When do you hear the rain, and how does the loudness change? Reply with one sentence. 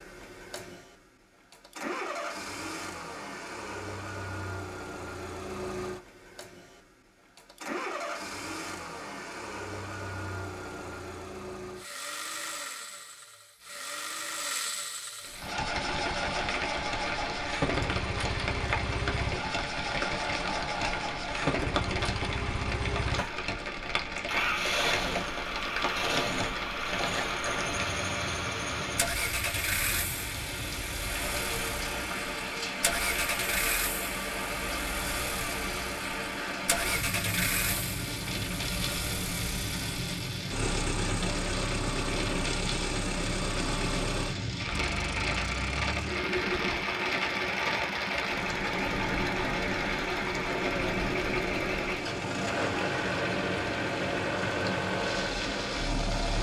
You can hear the rain from 15.2 to 56.3 s, at a steady volume.